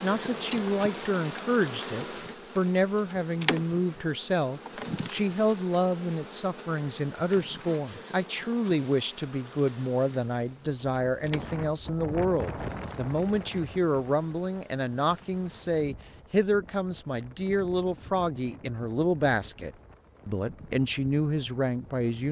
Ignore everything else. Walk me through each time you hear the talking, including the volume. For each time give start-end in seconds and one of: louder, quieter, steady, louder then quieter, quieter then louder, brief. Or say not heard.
0.0-22.2 steady.